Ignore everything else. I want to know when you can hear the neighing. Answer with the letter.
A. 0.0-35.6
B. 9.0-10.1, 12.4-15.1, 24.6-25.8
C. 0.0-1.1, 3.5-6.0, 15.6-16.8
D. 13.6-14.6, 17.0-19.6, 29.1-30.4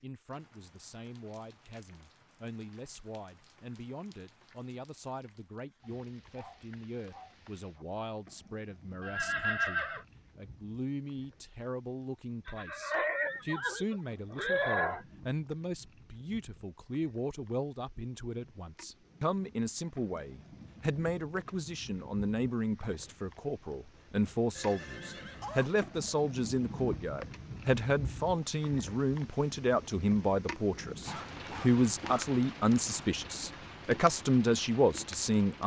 B.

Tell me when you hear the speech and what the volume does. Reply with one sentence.
The speech can be heard from 0.0 to 35.6 s, getting louder.